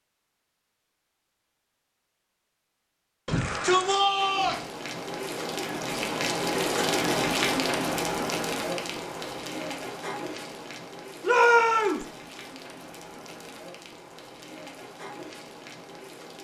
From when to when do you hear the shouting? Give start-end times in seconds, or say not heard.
3.2-4.7, 11.2-12.1.